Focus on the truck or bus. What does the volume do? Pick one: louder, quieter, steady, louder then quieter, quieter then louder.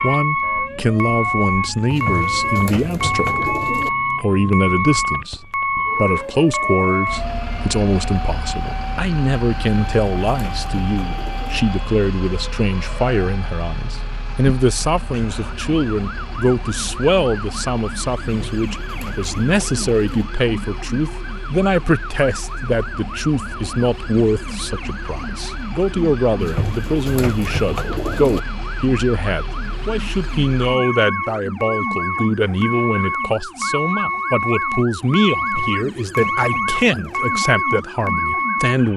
quieter then louder.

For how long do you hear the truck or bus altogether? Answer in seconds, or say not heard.
39 s.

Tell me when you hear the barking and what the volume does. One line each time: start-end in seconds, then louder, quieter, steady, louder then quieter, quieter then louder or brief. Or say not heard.
not heard.